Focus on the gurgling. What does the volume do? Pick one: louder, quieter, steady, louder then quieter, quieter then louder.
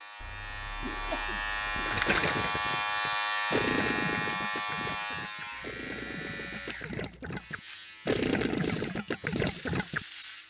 quieter then louder.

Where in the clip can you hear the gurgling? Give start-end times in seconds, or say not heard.
1.8-10.1.